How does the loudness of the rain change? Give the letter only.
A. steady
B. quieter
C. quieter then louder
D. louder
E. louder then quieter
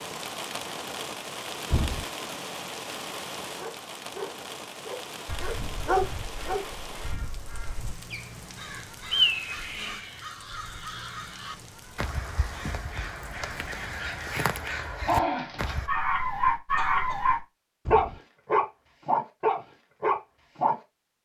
B.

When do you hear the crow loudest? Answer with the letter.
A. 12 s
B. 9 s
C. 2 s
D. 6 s
B.